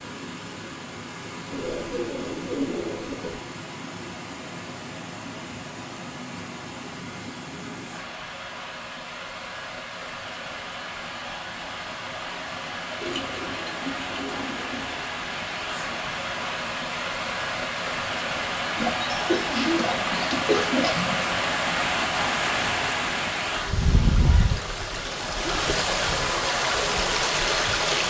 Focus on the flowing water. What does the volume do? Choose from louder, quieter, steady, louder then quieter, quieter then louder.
louder.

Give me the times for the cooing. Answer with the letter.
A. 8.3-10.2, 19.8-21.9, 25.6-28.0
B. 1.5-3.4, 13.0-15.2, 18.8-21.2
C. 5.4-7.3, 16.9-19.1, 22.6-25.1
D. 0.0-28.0
B.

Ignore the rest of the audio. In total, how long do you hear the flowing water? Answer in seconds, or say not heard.
28 s.